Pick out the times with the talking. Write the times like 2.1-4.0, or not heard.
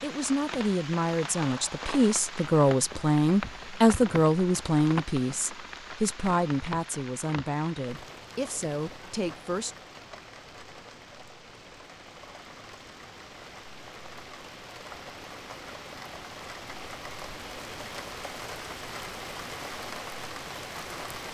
0.0-9.8.